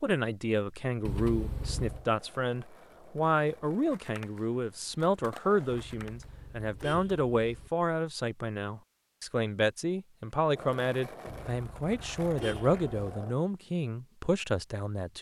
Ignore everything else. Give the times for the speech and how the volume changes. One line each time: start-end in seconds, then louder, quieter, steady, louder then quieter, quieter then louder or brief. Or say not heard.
0.0-15.1 steady.